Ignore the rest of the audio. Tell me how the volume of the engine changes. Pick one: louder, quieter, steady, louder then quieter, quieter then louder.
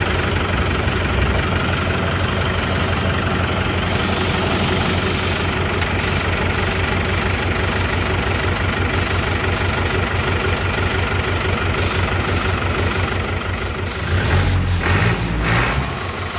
steady.